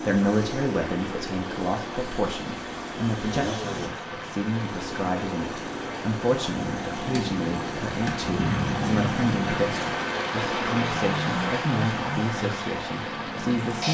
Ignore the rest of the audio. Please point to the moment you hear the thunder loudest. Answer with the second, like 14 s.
9 s.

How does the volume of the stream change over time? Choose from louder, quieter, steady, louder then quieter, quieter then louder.
louder.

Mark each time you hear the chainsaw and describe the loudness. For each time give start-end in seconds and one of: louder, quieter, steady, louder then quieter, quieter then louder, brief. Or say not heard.
0.0-13.8 steady.